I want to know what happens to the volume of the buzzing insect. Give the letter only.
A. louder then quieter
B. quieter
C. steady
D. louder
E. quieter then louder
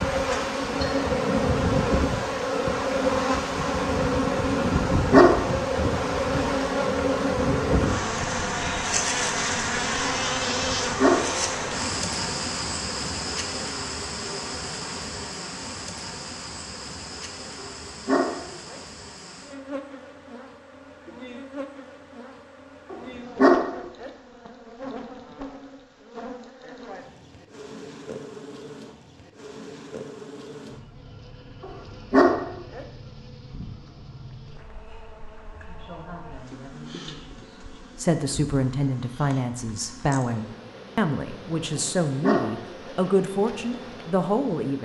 B.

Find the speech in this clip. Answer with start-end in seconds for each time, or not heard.
35.6-44.8.